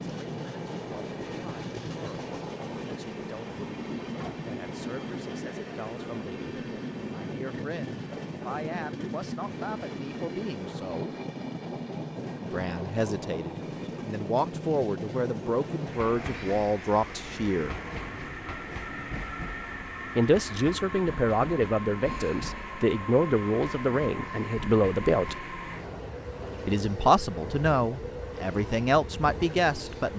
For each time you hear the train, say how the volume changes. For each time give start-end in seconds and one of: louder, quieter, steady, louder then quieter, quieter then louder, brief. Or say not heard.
0.0-30.1 steady.